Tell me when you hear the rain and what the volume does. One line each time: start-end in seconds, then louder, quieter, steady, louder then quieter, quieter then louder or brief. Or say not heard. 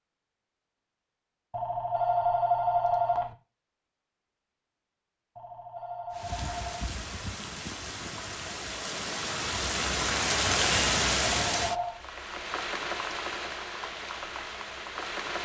6.1-15.4 louder then quieter.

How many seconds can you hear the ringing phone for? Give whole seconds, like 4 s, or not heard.
4 s.